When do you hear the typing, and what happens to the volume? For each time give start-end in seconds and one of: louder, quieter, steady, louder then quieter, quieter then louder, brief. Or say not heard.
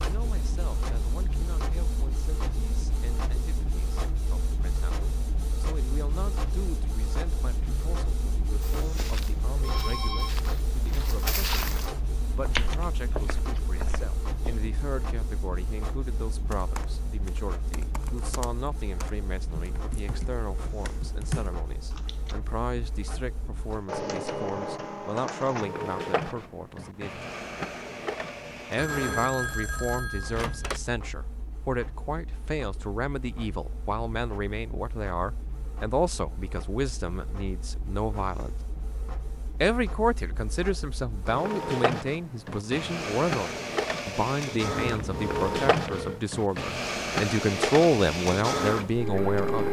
16.5-22.4 louder.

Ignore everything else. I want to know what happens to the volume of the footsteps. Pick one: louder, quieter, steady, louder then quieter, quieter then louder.
louder then quieter.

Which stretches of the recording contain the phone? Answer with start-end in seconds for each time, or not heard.
9.6-10.3, 28.8-30.8, 44.8-46.2.